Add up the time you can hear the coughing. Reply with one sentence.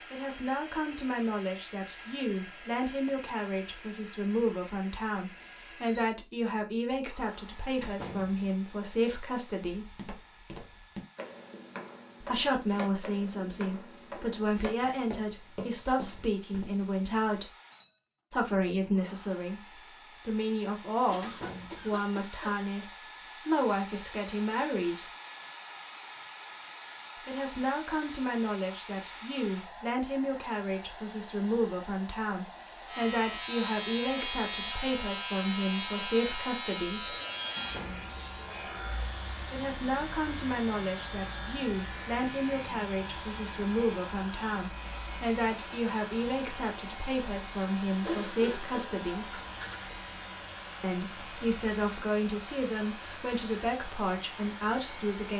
You can hear the coughing for 3 seconds altogether.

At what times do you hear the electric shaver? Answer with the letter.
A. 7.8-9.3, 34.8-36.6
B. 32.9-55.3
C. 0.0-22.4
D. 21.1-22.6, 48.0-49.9
B.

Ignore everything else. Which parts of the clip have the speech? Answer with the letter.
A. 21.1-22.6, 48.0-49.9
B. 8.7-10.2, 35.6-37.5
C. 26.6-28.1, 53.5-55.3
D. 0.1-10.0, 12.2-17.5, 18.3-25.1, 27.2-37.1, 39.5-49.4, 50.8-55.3
D.